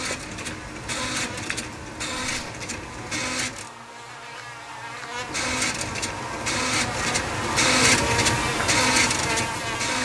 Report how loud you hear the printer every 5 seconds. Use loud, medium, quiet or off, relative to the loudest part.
medium, loud.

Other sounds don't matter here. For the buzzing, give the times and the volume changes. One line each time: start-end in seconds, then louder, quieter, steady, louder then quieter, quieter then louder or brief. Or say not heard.
0.1-9.9 louder.